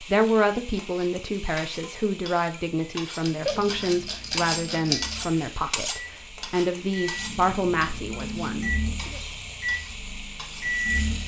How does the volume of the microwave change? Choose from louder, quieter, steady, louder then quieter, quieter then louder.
louder.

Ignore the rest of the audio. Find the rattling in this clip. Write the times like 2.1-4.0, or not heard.
3.2-5.2.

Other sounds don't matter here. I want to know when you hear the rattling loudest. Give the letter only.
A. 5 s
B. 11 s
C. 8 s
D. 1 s
A.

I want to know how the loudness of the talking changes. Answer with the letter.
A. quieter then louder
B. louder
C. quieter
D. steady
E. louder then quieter
D.